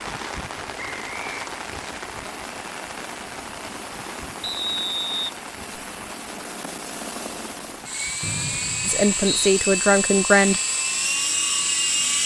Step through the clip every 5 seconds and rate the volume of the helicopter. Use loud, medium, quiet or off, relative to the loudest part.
quiet, medium, loud.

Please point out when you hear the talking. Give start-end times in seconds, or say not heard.
8.8-10.6.